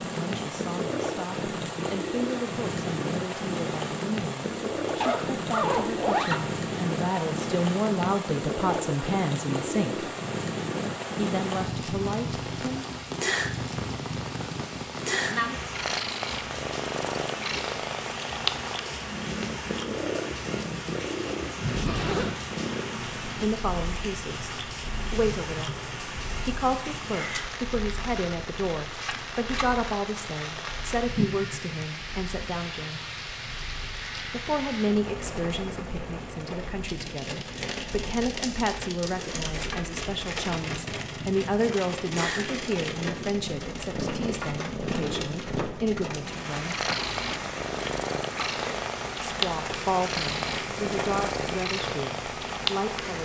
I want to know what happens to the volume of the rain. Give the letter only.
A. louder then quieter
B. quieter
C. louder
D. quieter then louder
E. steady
E.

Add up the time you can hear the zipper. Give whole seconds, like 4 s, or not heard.
3 s.